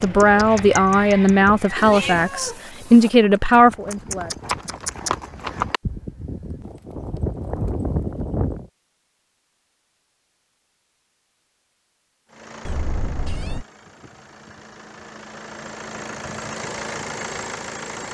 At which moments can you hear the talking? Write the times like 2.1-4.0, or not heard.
0.0-4.3.